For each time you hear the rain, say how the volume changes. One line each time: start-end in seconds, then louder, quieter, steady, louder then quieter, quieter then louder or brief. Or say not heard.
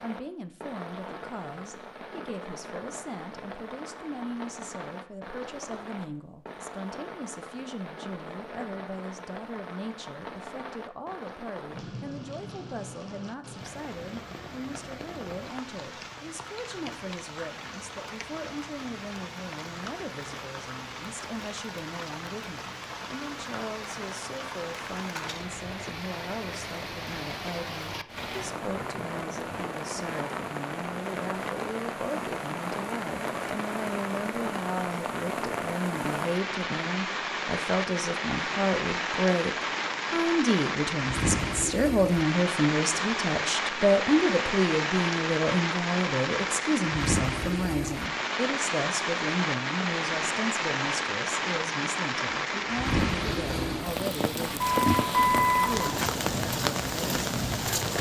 0.0-57.9 louder.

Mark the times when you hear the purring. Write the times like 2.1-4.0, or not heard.
53.0-57.9.